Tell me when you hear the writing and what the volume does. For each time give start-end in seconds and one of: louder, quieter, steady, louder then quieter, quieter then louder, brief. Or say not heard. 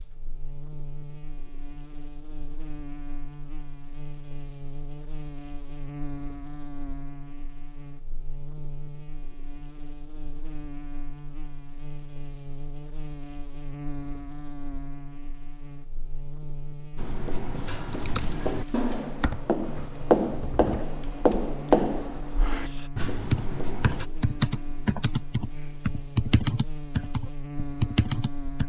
16.9-24.1 louder then quieter.